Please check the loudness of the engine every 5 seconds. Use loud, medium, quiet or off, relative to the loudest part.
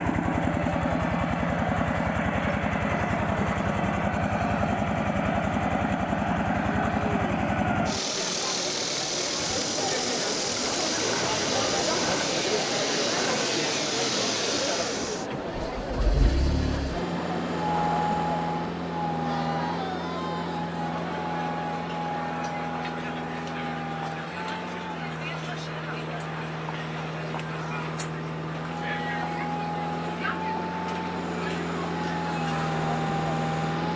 loud, loud, loud, loud, medium, medium, loud.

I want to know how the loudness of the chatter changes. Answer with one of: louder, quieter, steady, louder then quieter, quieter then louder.
louder then quieter.